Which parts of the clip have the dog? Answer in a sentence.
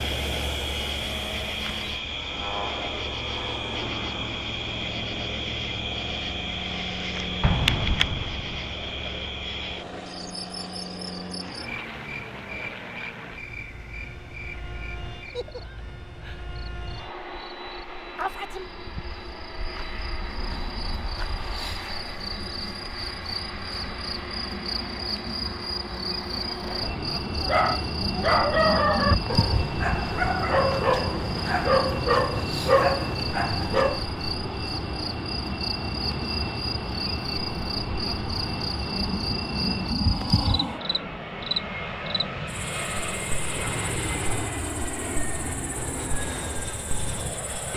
You can hear the dog from 27.4 to 34.0 s.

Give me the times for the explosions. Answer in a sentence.
The explosions can be heard from 7.4 to 8.7 s.